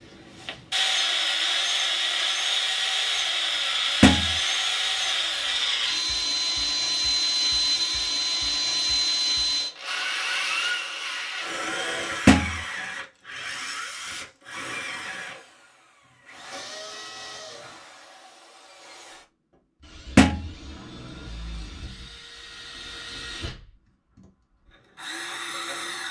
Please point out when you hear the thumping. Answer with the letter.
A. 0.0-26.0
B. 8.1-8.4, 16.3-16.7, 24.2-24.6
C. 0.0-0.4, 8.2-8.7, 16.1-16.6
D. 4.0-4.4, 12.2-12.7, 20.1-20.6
D.